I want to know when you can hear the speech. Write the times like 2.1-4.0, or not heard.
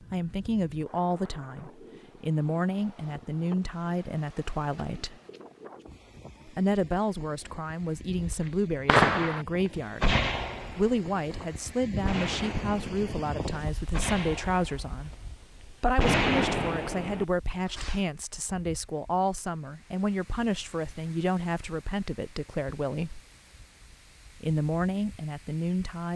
0.1-5.2, 6.5-23.2, 24.4-26.1.